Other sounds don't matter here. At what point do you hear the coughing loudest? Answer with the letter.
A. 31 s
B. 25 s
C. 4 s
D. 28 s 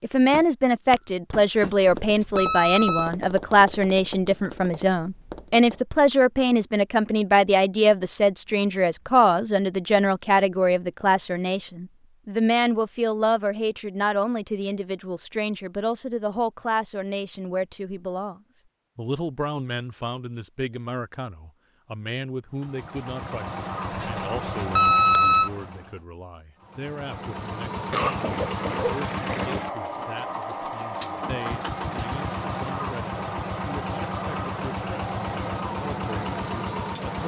D.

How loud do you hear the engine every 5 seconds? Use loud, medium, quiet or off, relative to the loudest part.
off, off, off, off, loud, loud, loud, loud.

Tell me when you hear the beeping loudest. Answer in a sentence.
The volume of the beeping peaks at 25 seconds.